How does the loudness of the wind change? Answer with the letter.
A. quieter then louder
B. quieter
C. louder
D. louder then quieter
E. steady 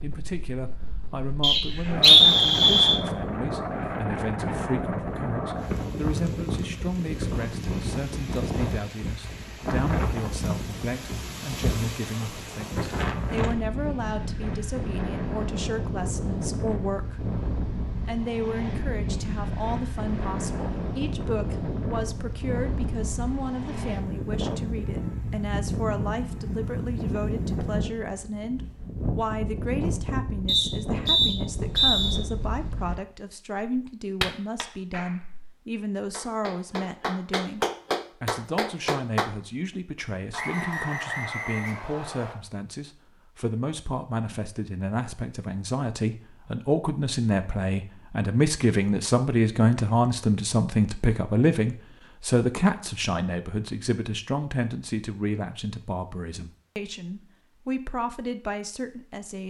E.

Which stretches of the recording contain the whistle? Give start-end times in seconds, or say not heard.
1.4-3.0, 30.4-32.2, 40.3-42.4.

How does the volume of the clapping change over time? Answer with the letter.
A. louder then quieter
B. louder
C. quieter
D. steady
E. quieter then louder
B.